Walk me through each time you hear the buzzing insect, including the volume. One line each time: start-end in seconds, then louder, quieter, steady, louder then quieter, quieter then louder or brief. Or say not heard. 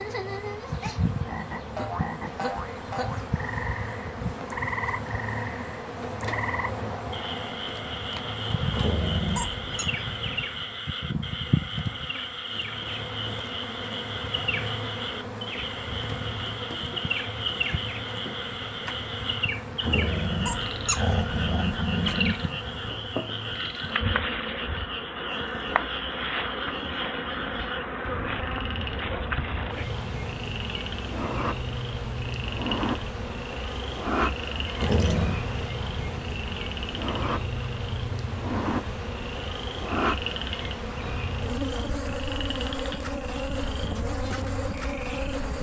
0.0-45.5 steady.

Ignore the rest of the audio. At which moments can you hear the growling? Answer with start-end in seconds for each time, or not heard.
8.7-9.8, 19.8-22.4, 34.8-35.4.